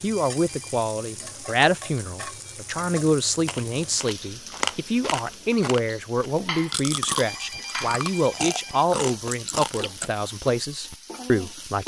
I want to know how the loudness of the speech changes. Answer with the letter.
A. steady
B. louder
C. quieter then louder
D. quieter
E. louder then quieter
A.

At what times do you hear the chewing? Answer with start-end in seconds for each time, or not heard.
3.5-10.1.